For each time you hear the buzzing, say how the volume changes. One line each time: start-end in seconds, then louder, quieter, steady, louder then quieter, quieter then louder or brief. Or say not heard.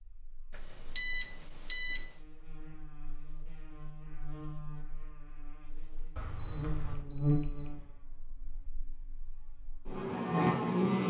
0.1-11.0 louder.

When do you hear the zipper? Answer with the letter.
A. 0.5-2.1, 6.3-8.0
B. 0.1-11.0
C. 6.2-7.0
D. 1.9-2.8
C.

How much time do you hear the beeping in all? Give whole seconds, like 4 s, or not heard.
3 s.